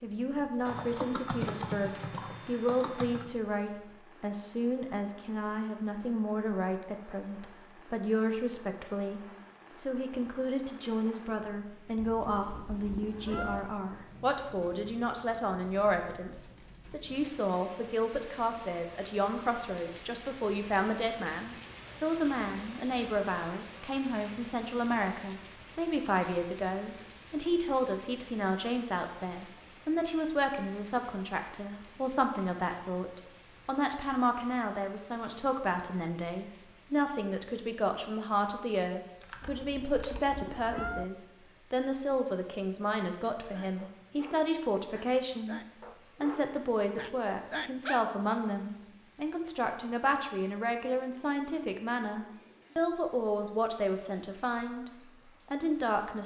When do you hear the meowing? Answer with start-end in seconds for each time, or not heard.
11.9-13.7, 39.4-41.0.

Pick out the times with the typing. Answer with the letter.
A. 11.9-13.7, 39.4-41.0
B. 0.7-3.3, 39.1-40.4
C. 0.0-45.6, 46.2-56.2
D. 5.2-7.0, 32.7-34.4
B.